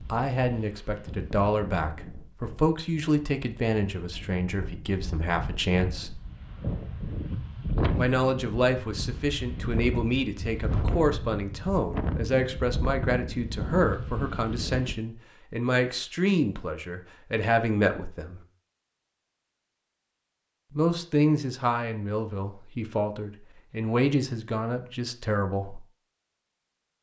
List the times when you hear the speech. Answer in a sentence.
You can hear the speech from 0.1 to 6.2 s, from 8.0 to 18.4 s and from 20.7 to 25.9 s.